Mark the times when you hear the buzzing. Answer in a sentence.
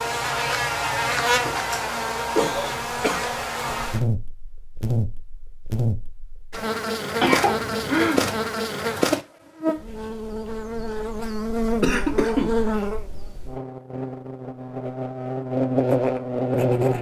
You can hear the buzzing from 0.0 to 16.9 s.